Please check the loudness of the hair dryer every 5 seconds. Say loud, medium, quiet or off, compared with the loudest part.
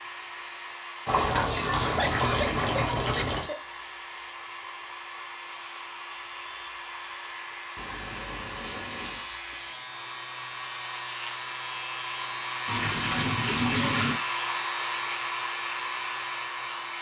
medium, medium, loud, loud.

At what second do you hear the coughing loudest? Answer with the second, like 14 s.
2 s.